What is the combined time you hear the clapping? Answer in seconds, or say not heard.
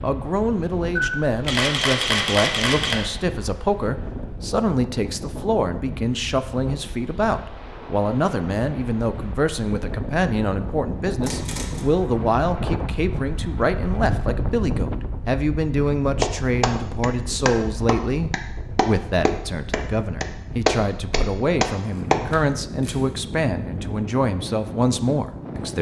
6 s.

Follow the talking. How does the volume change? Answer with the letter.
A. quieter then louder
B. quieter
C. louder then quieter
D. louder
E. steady
E.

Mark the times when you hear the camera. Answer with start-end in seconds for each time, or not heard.
0.9-3.0, 11.2-11.9, 21.9-23.0.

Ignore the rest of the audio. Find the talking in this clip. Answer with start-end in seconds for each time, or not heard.
0.0-25.7.